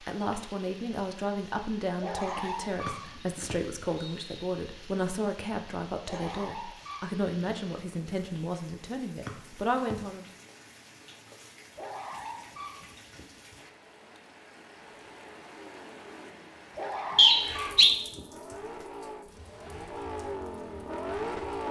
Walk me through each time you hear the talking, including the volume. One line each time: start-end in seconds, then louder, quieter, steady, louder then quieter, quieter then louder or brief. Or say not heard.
0.0-10.2 steady.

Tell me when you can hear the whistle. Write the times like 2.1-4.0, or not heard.
2.9-4.5, 9.2-9.9, 17.1-17.9.